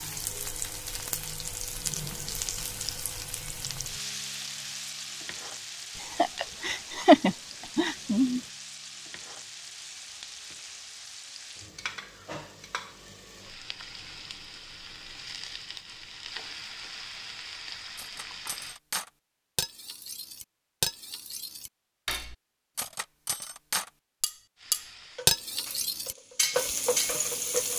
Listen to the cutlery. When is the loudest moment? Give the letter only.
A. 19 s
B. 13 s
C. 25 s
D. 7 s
C.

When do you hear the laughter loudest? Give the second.
7 s.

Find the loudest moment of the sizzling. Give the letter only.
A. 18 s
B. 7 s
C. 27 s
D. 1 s
C.